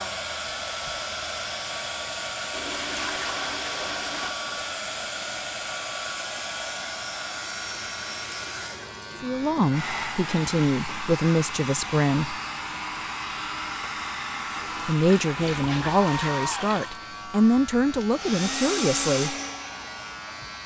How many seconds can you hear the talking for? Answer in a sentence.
You can hear the talking for 8 seconds altogether.